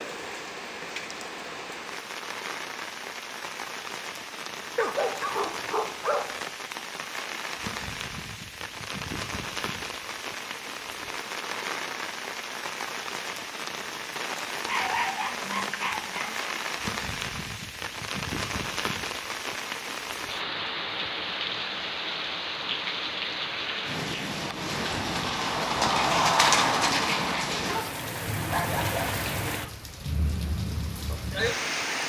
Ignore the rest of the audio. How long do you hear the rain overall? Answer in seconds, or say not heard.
32 s.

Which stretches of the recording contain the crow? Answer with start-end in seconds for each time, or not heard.
not heard.